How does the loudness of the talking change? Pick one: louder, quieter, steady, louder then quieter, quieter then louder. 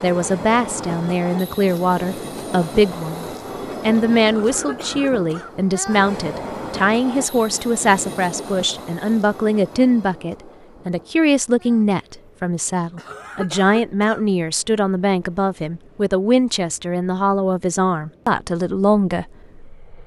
steady.